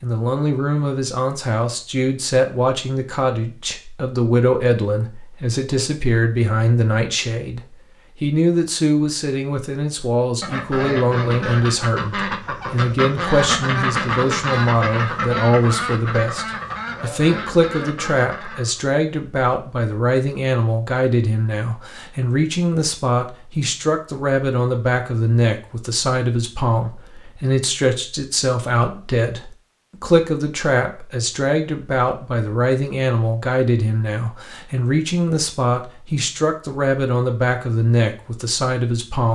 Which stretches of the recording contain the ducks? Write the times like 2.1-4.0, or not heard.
10.4-18.8.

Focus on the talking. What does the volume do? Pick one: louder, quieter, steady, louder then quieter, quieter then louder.
steady.